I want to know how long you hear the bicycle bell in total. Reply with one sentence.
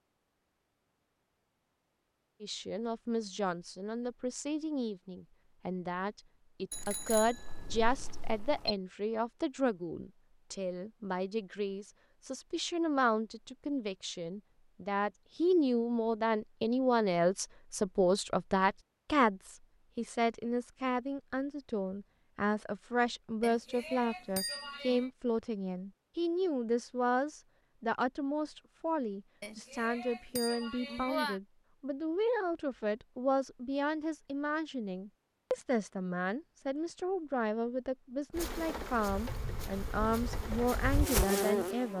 The bicycle bell can be heard for 6 seconds in total.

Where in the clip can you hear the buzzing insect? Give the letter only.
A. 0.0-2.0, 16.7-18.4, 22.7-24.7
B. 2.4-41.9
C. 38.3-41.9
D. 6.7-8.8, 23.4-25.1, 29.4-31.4
C.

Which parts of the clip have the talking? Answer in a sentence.
The talking can be heard from 2.4 to 41.9 s.